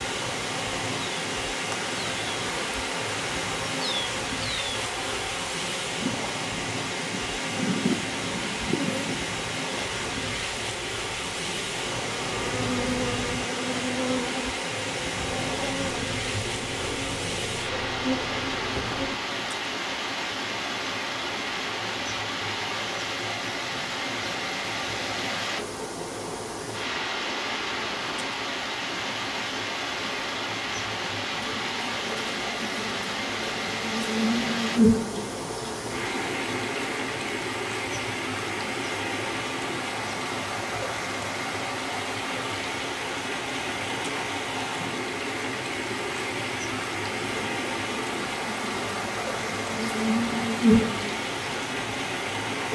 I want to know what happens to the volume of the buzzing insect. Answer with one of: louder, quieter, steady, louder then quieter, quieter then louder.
quieter then louder.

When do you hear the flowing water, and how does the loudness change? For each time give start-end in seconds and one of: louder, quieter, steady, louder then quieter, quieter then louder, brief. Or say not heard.
0.0-52.7 steady.